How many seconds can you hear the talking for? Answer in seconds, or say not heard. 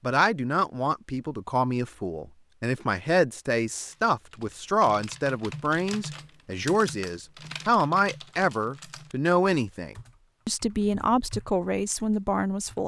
13 s.